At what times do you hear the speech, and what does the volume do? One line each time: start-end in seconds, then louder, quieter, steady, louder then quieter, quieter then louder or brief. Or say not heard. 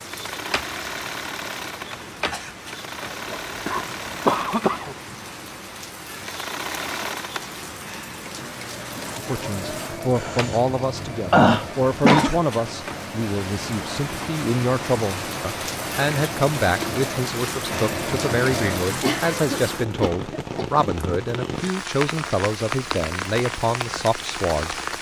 9.2-24.9 steady.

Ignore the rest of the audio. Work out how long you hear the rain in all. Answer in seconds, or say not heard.
25 s.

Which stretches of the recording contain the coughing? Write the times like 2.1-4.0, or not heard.
3.2-5.0, 10.1-12.3, 19.0-20.6.